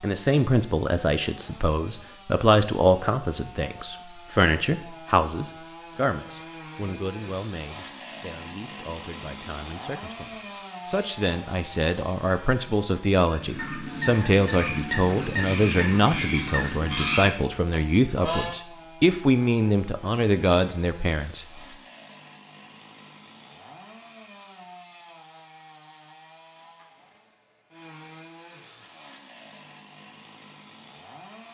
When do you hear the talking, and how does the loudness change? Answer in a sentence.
The talking can be heard from 0.0 to 21.4 s, getting quieter then louder.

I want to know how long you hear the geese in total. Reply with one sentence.
You can hear the geese for 5 seconds altogether.